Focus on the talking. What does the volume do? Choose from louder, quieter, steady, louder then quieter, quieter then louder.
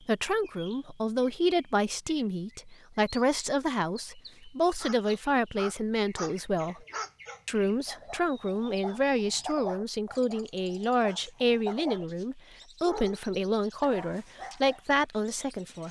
steady.